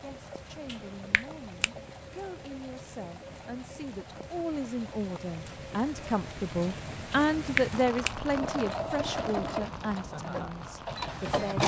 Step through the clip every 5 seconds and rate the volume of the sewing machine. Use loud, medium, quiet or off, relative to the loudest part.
quiet, medium, loud.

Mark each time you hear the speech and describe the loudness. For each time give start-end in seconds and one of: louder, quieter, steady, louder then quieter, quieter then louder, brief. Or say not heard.
0.0-11.6 louder then quieter.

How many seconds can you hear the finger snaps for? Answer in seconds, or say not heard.
2 s.